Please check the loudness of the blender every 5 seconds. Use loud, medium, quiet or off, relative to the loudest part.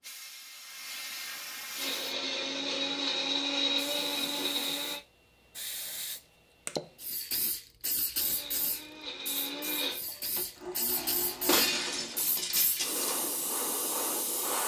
loud, medium, medium.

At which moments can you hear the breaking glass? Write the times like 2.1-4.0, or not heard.
11.4-13.2.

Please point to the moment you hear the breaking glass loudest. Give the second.
12 s.